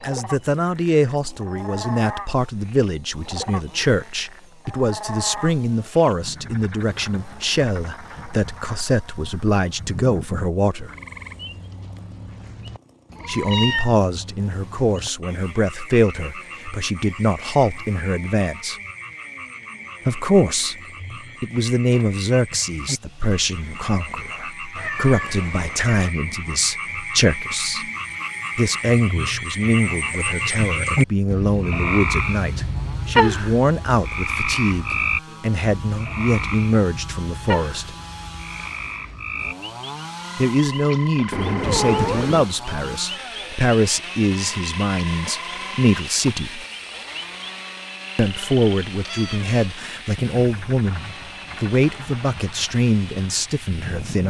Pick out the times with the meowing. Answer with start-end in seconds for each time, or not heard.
13.1-14.0, 24.8-26.1, 41.3-42.5.